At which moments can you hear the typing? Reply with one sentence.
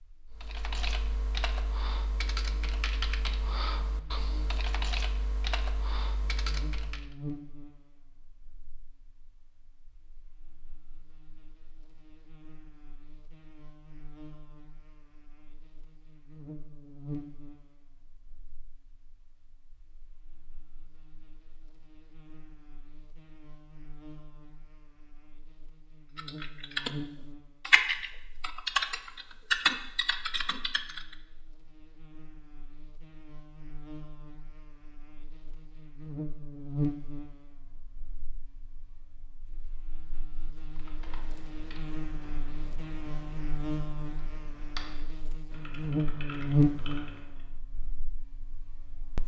You can hear the typing from 0.3 to 7.1 s, from 26.1 to 26.9 s, from 27.6 to 31.1 s and from 40.7 to 47.5 s.